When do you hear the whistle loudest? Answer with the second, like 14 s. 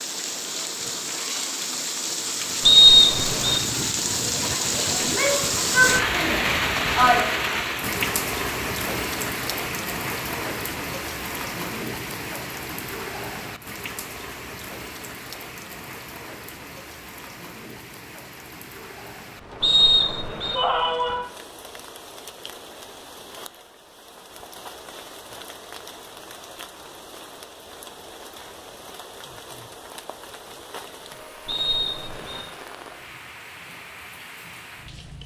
3 s.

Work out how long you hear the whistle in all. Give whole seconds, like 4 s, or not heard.
3 s.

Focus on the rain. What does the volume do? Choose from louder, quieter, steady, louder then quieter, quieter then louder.
quieter.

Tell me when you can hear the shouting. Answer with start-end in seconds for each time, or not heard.
5.0-7.2, 20.5-21.3.